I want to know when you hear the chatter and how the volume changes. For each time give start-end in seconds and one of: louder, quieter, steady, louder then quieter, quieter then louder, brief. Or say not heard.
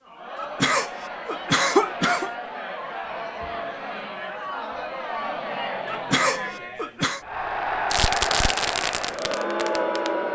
0.0-10.3 louder.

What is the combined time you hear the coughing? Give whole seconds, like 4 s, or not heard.
3 s.